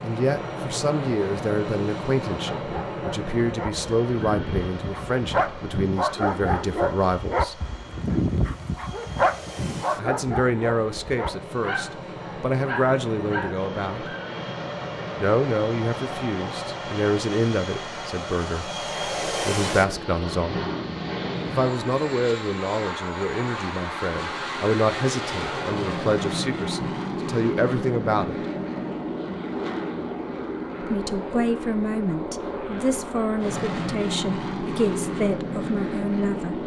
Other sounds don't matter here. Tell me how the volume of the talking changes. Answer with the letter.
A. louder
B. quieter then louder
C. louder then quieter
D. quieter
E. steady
E.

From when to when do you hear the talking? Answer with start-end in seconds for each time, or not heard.
0.0-7.7, 9.9-14.2, 15.2-20.7, 21.4-28.4, 30.8-36.6.